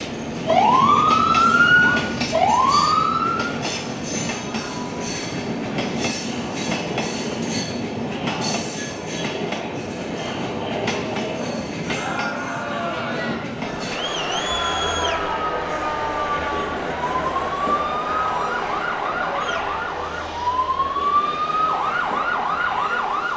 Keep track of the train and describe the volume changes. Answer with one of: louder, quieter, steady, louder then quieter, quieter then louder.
quieter.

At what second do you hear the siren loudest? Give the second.
1 s.